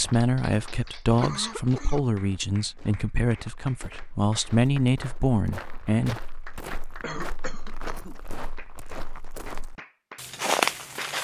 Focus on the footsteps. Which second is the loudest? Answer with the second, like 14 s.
11 s.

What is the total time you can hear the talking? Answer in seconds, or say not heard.
6 s.